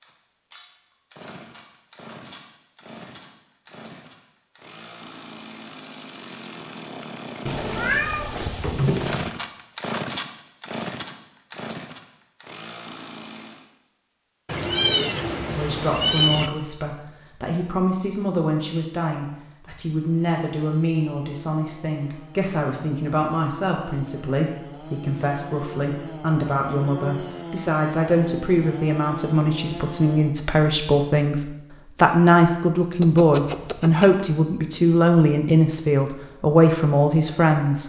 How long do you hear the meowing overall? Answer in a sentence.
You can hear the meowing for 5 seconds altogether.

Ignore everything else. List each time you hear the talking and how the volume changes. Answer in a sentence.
You can hear the talking from 15.6 to 37.8 s, getting louder.